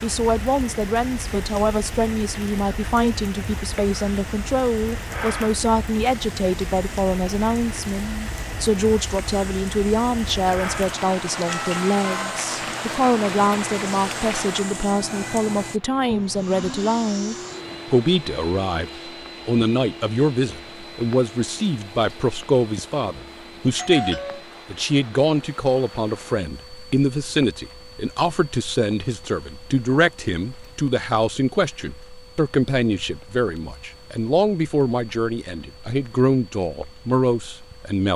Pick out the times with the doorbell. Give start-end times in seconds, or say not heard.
11.4-12.4, 23.8-24.4.